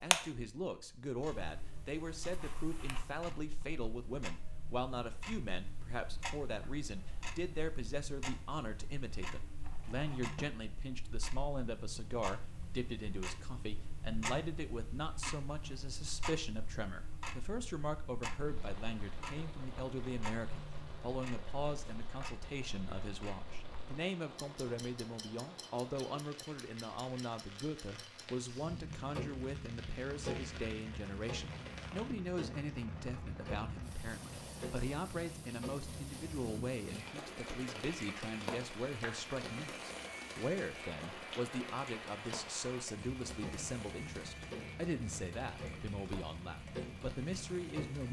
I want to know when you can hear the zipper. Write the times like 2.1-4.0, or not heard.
not heard.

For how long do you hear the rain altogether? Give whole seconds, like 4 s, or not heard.
30 s.